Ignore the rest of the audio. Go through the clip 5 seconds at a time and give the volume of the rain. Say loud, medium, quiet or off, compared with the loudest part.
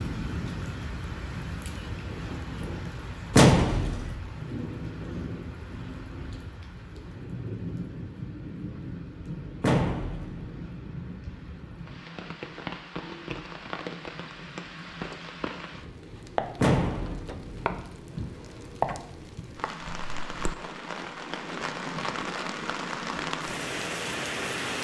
loud, medium, medium, loud, loud.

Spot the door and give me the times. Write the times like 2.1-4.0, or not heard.
3.3-4.2, 9.6-10.4, 16.6-17.4.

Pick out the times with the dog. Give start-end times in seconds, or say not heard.
not heard.